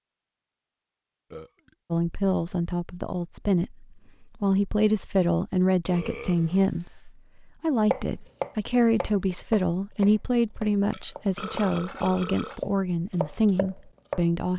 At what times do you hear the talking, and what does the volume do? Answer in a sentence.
You can hear the talking from 1.9 to 14.5 s, at a steady volume.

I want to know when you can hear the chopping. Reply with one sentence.
The chopping can be heard from 7.9 to 14.2 s.